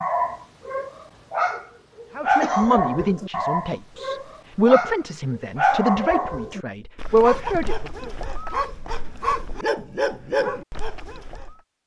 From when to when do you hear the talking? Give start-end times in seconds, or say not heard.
2.1-8.1.